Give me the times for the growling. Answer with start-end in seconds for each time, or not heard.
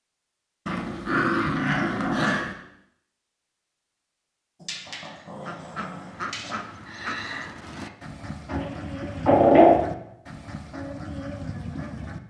0.7-2.5, 4.6-6.5, 8.5-9.8.